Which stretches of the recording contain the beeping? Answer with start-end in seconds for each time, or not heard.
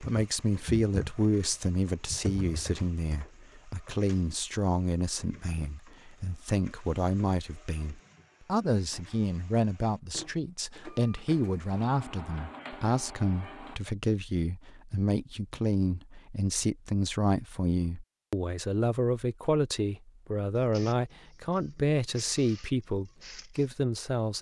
not heard.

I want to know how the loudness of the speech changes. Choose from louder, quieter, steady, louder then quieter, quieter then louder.
steady.